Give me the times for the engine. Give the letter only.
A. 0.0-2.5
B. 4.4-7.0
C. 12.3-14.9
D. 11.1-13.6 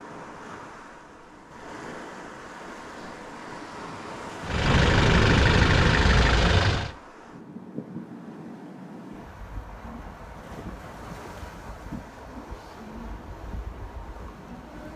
B.